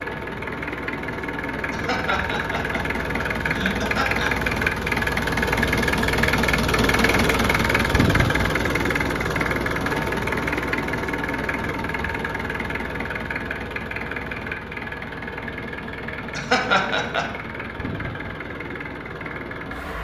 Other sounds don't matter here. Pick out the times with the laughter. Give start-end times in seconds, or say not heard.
1.7-4.3, 16.3-17.3.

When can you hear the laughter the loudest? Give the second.
17 s.